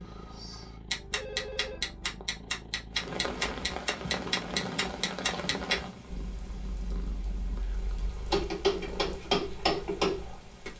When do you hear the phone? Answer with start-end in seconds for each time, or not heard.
0.9-2.2.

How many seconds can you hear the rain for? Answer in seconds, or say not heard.
8 s.